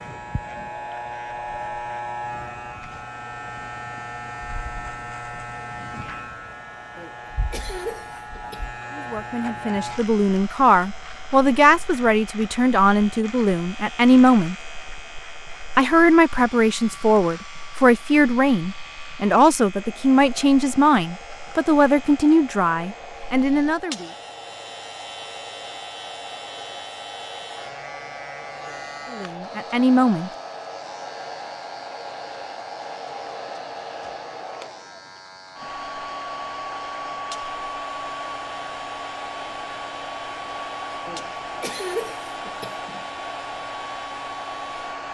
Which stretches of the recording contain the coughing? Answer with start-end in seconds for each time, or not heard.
7.0-8.7, 41.0-43.0.